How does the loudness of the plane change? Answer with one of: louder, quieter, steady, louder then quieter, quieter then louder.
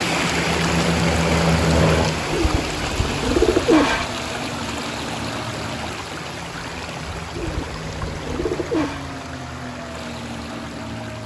quieter.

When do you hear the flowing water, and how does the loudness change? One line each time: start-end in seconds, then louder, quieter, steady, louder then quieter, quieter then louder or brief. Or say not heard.
0.0-11.2 quieter.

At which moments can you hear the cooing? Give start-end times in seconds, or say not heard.
2.3-4.0, 7.3-9.0.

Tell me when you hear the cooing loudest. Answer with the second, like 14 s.
4 s.